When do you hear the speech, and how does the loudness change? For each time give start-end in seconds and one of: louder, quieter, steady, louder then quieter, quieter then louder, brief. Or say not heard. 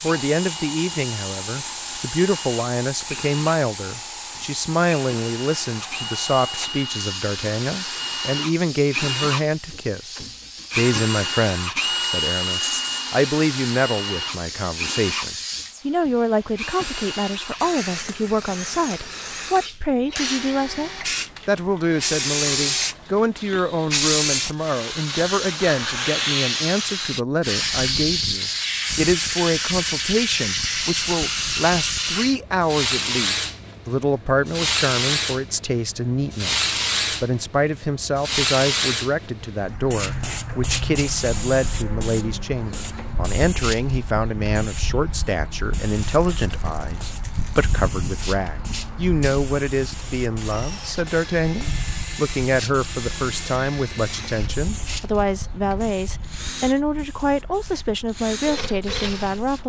0.0-59.6 steady.